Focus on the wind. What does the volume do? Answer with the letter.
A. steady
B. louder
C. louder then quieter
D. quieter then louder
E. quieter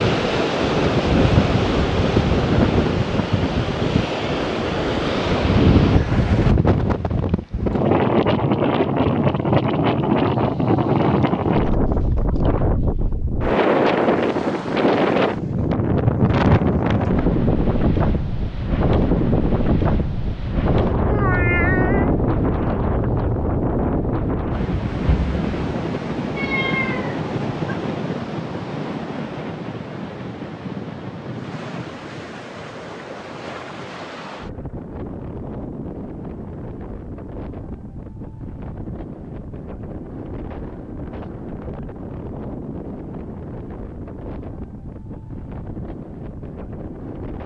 E.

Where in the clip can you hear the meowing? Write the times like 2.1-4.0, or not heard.
21.1-22.1, 26.4-27.8.